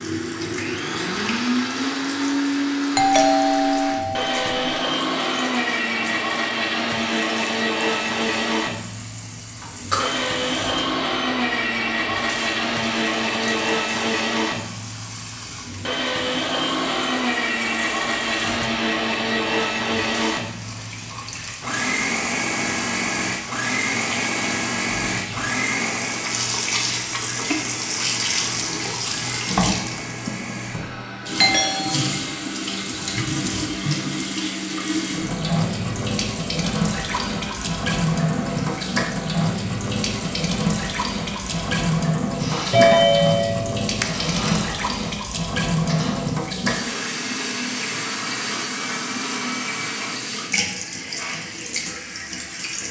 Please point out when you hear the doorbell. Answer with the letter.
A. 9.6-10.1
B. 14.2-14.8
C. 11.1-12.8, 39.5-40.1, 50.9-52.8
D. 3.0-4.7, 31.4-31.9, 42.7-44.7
D.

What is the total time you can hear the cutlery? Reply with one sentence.
You can't hear the cutlery here.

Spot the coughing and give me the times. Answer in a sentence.
The coughing can be heard from 9.6 to 10.1 s.